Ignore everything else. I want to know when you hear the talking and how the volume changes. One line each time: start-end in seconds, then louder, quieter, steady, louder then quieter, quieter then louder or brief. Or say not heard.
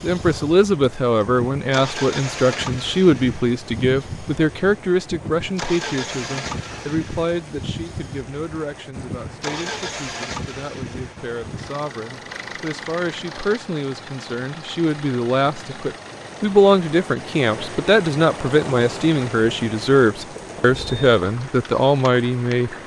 0.0-22.8 quieter then louder.